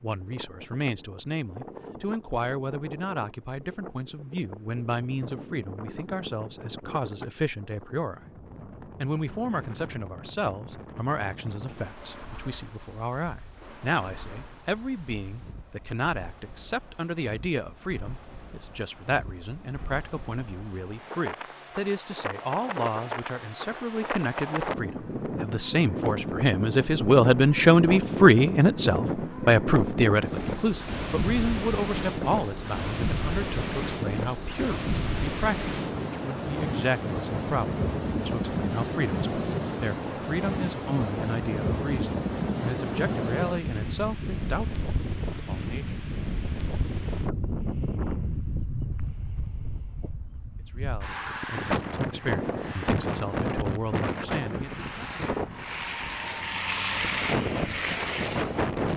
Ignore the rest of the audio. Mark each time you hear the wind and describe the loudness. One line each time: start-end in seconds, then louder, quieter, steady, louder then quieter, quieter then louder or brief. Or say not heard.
0.0-58.9 louder.